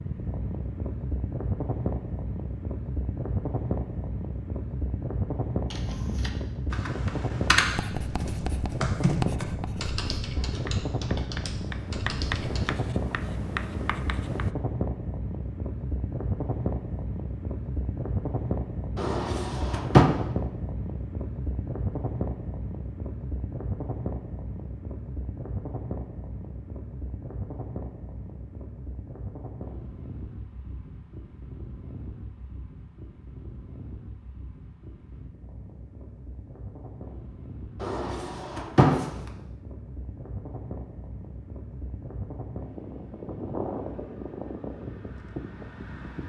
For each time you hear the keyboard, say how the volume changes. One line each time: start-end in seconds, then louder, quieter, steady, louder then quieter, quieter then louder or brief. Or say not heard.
5.7-12.8 louder then quieter.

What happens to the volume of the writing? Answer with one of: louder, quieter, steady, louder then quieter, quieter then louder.
quieter then louder.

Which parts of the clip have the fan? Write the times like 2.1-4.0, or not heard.
0.0-46.2.